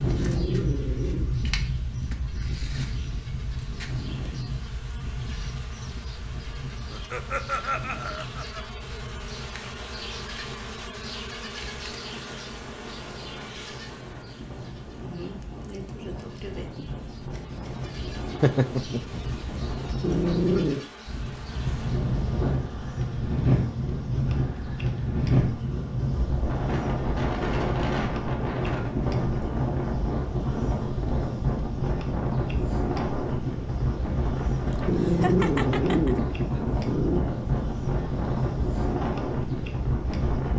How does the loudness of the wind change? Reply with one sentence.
The loudness of the wind goes down, then up.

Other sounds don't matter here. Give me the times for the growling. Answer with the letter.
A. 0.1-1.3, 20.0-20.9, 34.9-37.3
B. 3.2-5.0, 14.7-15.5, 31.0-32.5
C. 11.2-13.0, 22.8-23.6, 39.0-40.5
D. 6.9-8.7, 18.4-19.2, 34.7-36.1
A.